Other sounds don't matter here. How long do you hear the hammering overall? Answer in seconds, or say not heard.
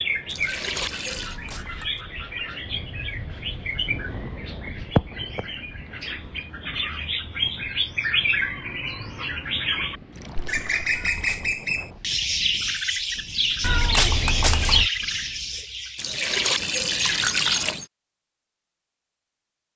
not heard.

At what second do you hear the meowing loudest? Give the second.
14 s.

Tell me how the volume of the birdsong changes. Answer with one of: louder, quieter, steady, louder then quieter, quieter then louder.
louder.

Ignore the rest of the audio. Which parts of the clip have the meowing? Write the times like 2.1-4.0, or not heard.
1.1-2.0, 10.9-11.6, 13.6-14.9.